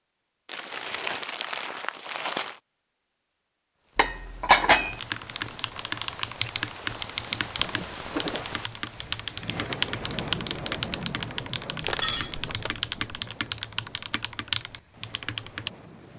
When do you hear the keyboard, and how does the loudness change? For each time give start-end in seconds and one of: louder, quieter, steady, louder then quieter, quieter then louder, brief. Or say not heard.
4.8-15.7 steady.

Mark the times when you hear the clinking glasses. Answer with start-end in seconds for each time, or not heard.
4.0-5.0, 12.0-13.2.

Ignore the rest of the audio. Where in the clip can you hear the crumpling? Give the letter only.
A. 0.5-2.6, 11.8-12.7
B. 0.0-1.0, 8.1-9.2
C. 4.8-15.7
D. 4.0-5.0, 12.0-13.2
A.